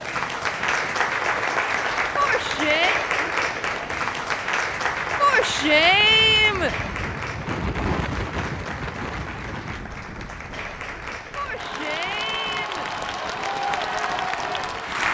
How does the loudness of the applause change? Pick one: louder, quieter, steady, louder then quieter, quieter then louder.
quieter then louder.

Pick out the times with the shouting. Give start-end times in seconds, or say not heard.
2.1-3.0, 5.2-6.8, 11.3-12.9.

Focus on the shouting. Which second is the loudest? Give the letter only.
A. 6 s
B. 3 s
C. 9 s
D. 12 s
A.